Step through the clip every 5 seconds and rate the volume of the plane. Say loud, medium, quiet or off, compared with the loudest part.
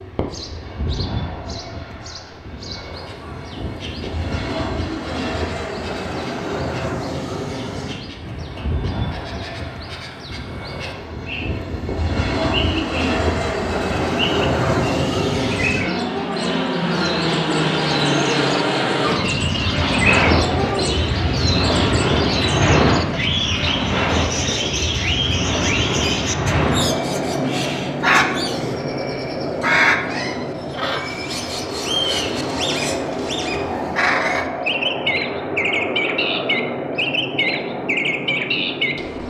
medium, medium, loud, loud, loud, loud, medium, medium.